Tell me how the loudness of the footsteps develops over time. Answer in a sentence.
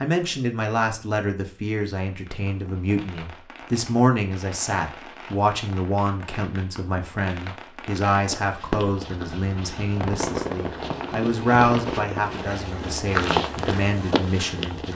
The volume of the footsteps goes up.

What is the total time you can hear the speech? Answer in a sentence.
You can hear the speech for 15 seconds altogether.